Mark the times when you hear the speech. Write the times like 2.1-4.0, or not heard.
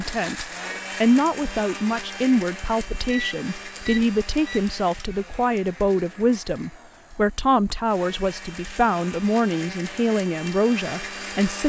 0.0-11.6.